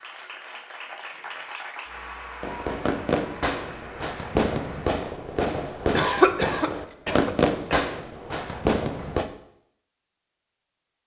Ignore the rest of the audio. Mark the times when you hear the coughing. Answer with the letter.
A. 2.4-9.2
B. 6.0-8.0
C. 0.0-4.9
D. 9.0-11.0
B.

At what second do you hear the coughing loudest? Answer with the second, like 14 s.
6 s.